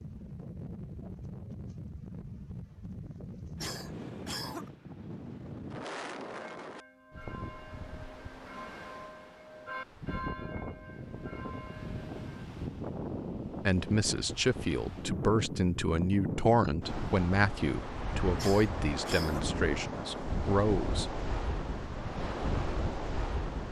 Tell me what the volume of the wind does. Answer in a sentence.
The volume of the wind goes up.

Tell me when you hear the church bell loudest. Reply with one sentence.
The loudest moment of the church bell is at 10 seconds.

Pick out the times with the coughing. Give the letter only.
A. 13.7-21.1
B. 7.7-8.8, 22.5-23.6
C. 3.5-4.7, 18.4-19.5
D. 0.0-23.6
C.